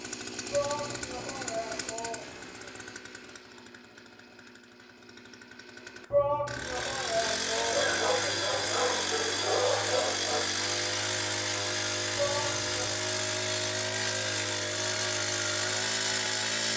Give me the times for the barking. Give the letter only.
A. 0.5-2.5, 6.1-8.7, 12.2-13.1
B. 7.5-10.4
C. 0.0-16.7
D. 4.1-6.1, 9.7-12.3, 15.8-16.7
B.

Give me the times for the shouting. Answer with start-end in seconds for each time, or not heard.
0.5-2.5, 6.1-8.7, 12.2-13.1.